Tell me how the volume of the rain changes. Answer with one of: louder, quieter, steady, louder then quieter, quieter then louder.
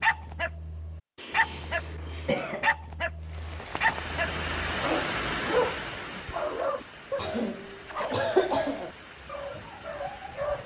quieter.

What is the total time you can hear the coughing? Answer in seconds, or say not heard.
3 s.